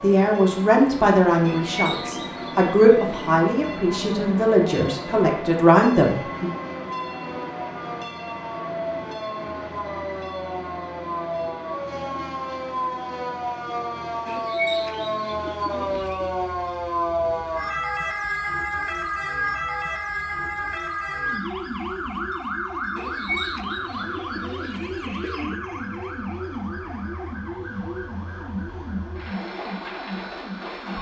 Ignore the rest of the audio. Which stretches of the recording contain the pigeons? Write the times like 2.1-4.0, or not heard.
1.4-3.4, 14.2-16.3, 22.9-25.6.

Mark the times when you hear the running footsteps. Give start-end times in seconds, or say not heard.
not heard.